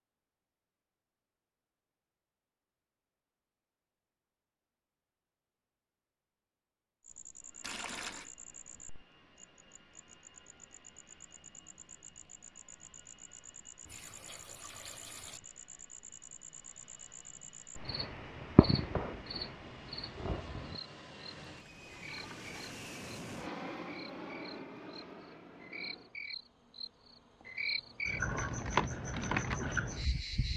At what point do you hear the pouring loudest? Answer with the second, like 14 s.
8 s.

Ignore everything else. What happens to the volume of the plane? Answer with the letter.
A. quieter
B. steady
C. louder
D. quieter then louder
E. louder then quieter
C.